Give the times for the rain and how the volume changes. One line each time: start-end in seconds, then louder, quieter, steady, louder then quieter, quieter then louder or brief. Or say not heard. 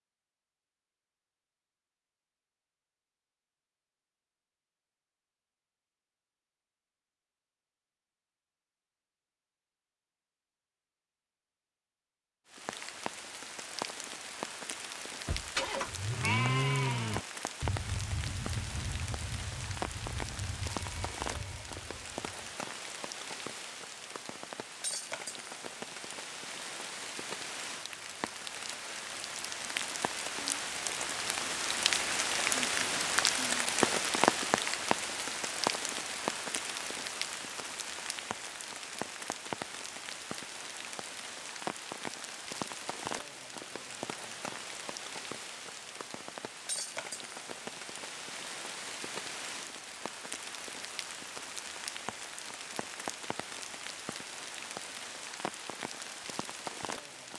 12.4-57.3 louder then quieter.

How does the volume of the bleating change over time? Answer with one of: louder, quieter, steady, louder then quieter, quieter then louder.
quieter.